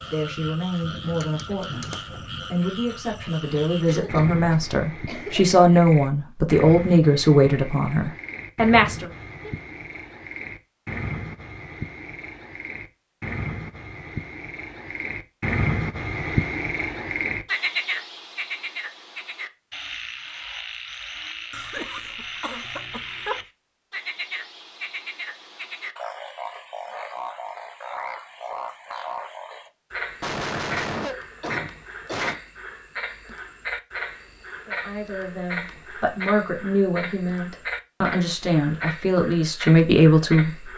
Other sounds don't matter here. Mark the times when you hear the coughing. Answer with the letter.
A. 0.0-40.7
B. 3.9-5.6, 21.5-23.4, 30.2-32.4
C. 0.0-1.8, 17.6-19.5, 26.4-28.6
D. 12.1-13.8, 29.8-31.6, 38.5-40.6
B.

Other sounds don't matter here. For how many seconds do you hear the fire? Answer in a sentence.
You can't hear the fire here.